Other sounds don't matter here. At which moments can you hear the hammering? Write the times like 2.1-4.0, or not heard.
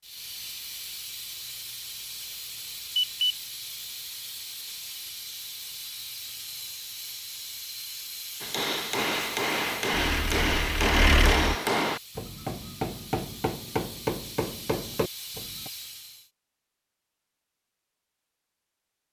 8.4-15.7.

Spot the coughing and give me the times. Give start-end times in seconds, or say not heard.
not heard.